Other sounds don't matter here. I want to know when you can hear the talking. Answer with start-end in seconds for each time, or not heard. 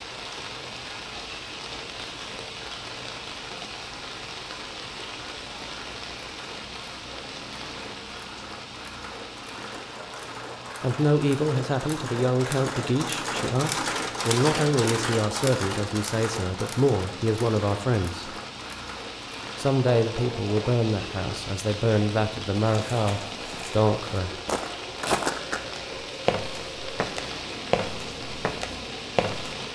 10.8-18.4, 19.6-24.3.